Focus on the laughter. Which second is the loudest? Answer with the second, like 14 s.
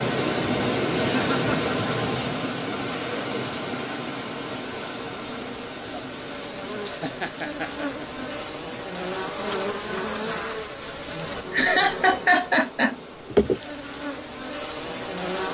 12 s.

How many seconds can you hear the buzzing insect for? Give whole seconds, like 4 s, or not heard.
11 s.